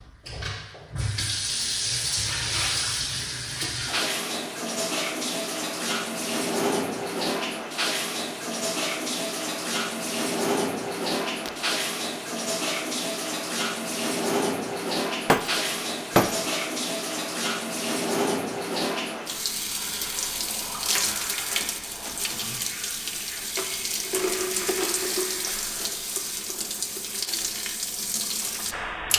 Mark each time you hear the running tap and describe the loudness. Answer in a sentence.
You can hear the running tap from 0.0 to 29.1 s, at a steady volume.